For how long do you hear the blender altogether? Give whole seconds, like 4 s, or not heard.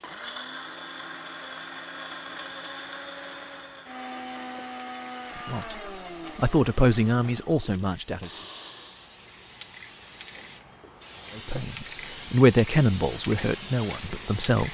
9 s.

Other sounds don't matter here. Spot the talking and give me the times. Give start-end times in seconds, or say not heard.
5.3-8.4, 11.3-14.6.